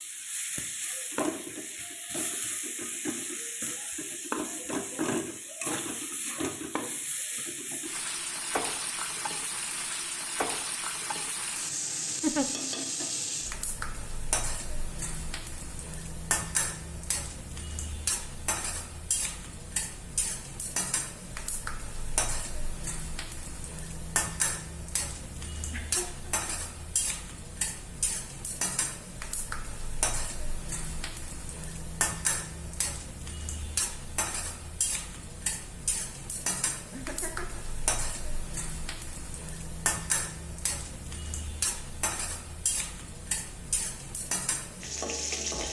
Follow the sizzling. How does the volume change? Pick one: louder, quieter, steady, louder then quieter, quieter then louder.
steady.